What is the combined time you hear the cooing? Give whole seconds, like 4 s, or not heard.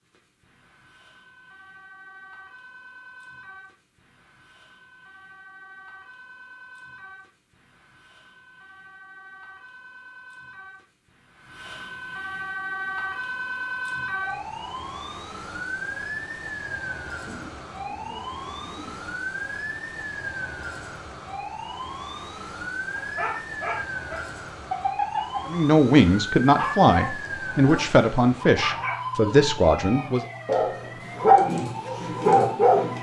2 s.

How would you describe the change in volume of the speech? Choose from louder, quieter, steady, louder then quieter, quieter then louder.
steady.